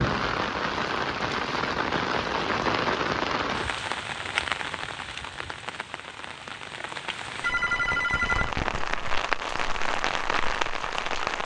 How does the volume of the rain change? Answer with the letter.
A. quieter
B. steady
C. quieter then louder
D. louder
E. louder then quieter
C.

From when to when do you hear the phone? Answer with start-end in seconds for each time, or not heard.
7.4-8.6.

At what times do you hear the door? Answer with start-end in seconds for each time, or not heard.
not heard.